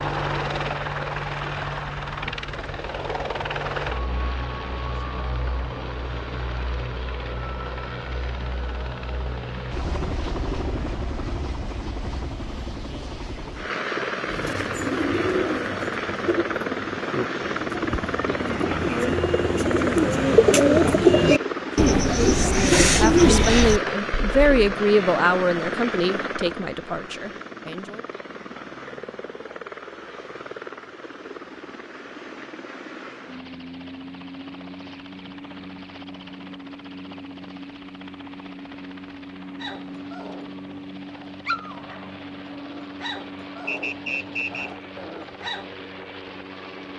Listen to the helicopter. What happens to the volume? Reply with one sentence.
The loudness of the helicopter goes down.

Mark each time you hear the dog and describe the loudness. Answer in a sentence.
You can hear the dog from 39.5 to 45.7 s, getting louder then quieter.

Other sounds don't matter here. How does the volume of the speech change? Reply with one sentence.
The loudness of the speech goes down.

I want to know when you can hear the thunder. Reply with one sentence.
You can't hear the thunder here.